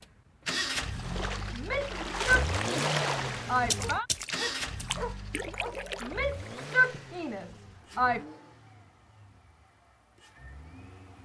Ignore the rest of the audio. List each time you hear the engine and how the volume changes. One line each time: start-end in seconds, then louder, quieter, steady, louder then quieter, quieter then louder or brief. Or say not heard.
0.0-11.2 quieter.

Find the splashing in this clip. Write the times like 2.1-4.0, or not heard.
0.9-7.0.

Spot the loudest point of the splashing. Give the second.
3 s.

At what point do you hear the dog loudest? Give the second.
5 s.